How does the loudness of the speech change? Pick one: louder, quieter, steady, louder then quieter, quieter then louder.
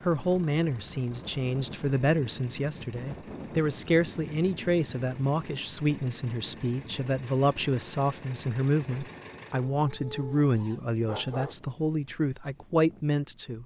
steady.